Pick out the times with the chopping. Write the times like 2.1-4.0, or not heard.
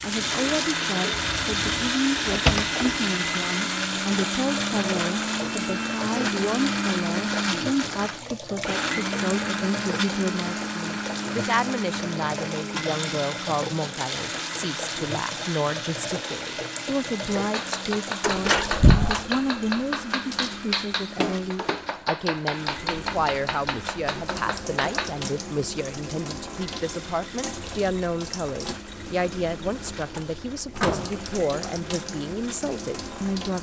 17.5-25.2.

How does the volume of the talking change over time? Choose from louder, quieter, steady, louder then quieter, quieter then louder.
steady.